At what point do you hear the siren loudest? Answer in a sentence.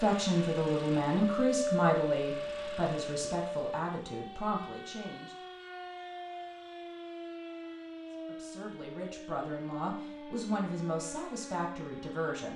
The volume of the siren peaks at 2 seconds.